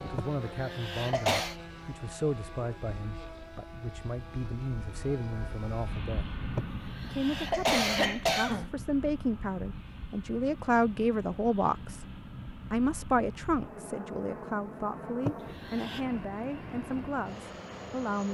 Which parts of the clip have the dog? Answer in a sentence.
You can't hear the dog here.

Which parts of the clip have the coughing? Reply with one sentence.
You can hear the coughing from 0.1 to 1.6 s, from 6.5 to 8.8 s and from 15.2 to 16.0 s.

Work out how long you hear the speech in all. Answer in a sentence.
The speech can be heard for 17 seconds in total.